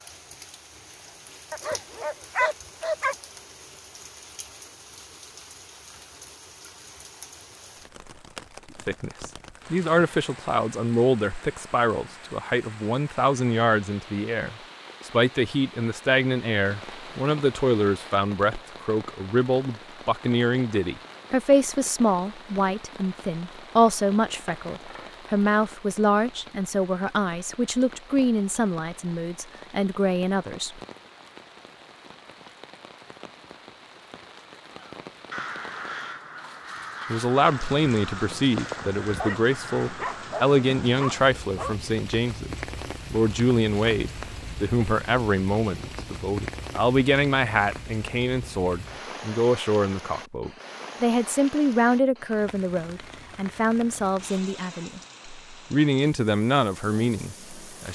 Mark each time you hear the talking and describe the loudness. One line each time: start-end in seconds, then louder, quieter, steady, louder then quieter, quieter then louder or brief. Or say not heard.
8.8-30.8 steady
37.1-57.8 steady.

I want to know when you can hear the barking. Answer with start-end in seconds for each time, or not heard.
1.5-3.1, 39.0-41.8.